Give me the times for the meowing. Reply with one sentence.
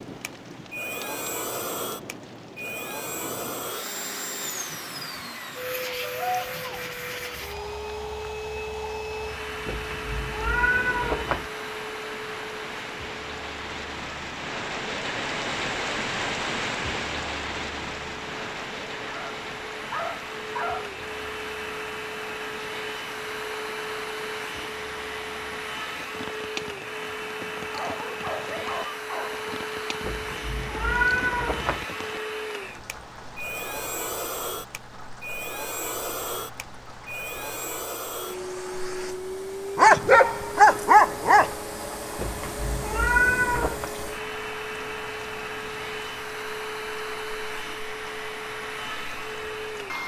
The meowing can be heard from 9.7 to 11.5 s, from 30.0 to 31.9 s and from 42.1 to 43.9 s.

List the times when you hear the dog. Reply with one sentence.
You can hear the dog from 6.0 to 6.8 s, from 19.1 to 20.9 s, from 27.7 to 29.4 s and from 39.8 to 41.5 s.